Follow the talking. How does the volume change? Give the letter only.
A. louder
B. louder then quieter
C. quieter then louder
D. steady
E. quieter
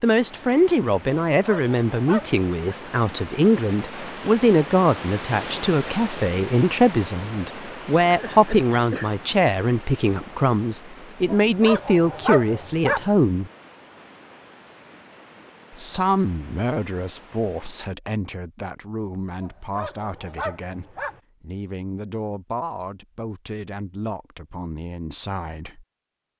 E.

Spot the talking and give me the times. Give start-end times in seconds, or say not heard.
0.0-13.5, 15.8-25.9.